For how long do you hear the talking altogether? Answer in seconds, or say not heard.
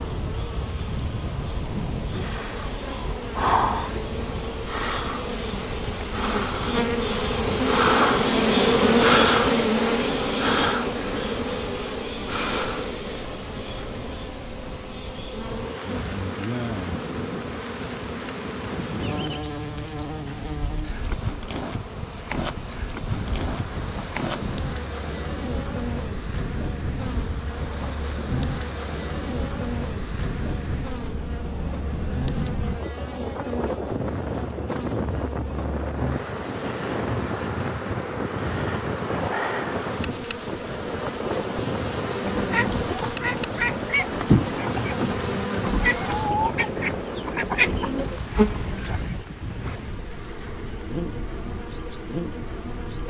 not heard.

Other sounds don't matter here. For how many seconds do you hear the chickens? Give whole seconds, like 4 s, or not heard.
7 s.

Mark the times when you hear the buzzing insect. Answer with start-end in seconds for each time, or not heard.
0.0-53.0.